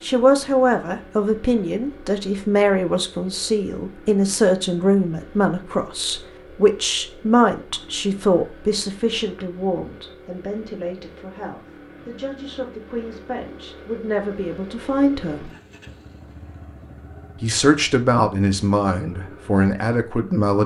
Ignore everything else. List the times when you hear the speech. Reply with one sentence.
The speech can be heard from 0.0 to 15.5 s and from 17.4 to 20.6 s.